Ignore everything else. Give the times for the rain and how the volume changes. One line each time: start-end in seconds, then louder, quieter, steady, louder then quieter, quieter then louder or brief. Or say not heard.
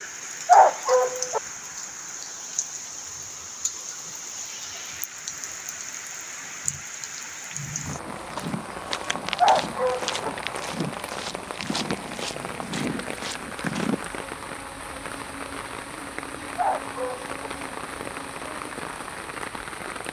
0.0-20.0 steady.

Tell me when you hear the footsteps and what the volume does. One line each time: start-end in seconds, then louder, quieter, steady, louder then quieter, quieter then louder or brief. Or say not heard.
8.1-14.2 steady.